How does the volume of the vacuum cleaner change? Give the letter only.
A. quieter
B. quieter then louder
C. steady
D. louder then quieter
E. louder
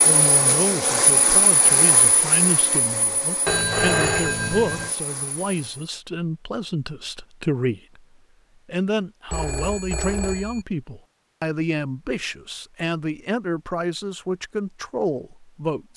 A.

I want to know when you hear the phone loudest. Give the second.
4 s.